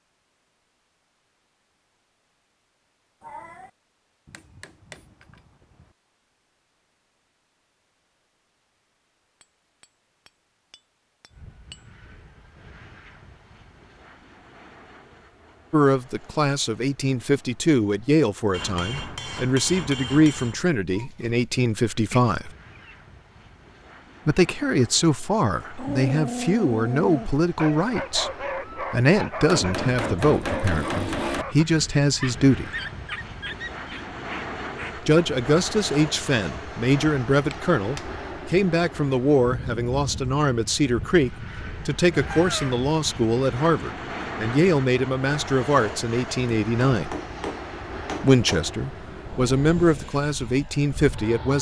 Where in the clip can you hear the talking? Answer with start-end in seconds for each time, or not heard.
15.7-22.5, 24.2-32.7, 35.0-47.1, 48.2-51.5.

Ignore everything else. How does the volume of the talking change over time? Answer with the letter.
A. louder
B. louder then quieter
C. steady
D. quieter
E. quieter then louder
C.